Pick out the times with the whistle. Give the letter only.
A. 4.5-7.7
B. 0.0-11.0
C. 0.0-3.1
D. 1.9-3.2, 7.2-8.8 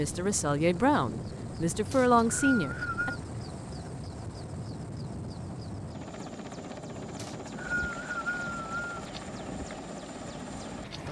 D.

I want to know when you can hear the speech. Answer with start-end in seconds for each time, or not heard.
0.0-3.1.